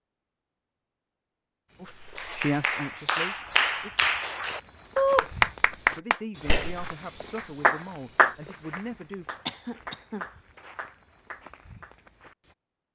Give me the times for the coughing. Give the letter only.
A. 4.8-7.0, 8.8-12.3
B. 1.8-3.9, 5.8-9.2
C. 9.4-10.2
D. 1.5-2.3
C.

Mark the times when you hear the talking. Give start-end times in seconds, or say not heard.
1.8-3.9, 5.8-9.2.